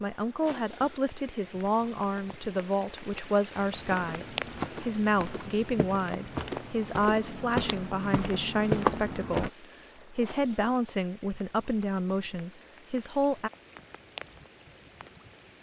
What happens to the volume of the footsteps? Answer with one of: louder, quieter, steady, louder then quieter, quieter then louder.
louder.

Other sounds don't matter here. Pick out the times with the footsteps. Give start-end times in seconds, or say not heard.
3.7-9.5.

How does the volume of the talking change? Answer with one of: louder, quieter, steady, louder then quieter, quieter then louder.
steady.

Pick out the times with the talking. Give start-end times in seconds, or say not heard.
0.0-13.5.